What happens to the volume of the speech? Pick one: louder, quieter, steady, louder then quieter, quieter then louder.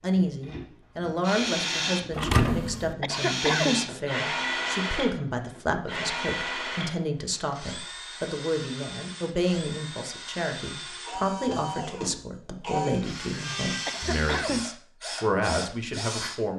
steady.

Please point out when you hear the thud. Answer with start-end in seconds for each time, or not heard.
2.1-3.0.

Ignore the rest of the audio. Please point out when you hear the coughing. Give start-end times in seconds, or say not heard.
3.0-3.9, 13.8-14.7.